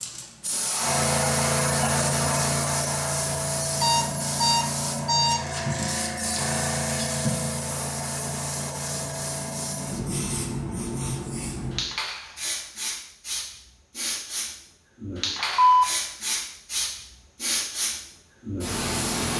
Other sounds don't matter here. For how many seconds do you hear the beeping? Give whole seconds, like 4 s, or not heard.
2 s.